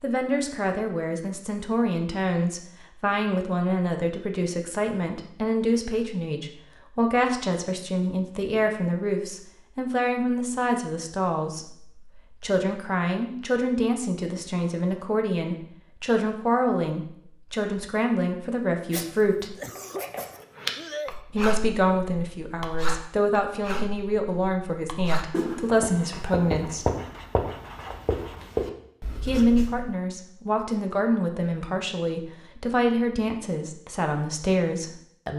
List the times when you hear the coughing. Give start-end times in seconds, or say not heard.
19.6-21.1.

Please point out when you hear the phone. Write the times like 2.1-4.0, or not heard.
not heard.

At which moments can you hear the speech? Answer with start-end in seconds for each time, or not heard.
0.0-19.6, 21.3-26.9, 29.2-35.3.